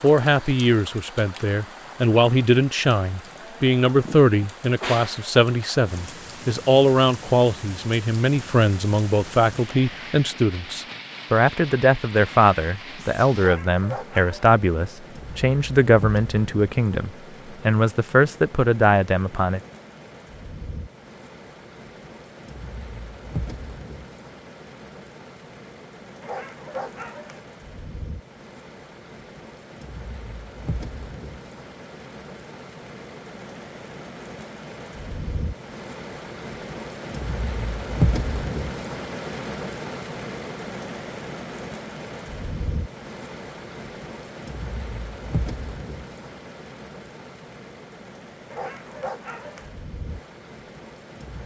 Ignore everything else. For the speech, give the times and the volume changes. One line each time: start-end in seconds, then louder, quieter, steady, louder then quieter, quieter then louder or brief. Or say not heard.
0.0-19.6 steady.